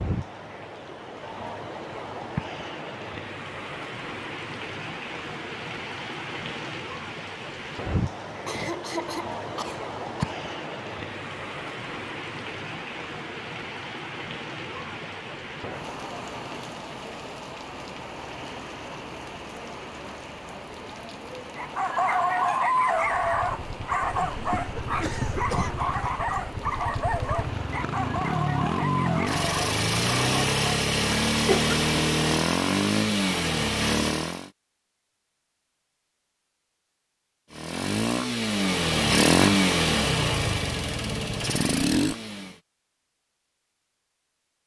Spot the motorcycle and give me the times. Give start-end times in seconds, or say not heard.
23.1-34.5, 37.5-42.5.